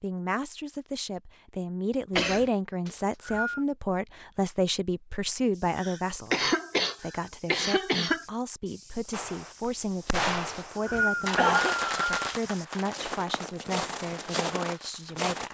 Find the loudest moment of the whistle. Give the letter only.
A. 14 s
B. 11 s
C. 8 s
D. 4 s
B.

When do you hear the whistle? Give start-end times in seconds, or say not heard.
2.9-3.6, 10.4-12.3.